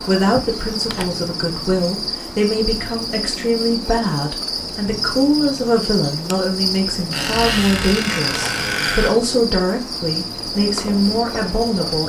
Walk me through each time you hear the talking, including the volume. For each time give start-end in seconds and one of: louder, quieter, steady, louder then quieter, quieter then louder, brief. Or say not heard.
0.0-12.0 steady.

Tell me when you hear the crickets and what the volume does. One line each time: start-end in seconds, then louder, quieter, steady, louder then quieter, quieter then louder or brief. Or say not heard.
0.0-12.0 steady.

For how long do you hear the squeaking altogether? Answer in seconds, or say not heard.
2 s.